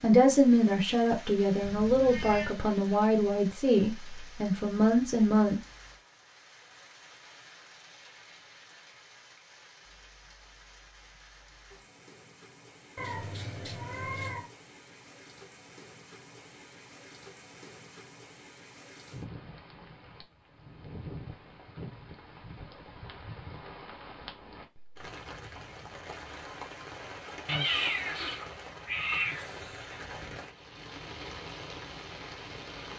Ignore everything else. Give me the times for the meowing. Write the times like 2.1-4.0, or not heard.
1.6-2.5, 12.9-14.5, 27.4-29.4.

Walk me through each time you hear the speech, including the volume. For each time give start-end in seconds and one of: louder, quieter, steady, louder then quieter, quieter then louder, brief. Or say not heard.
0.0-5.6 steady.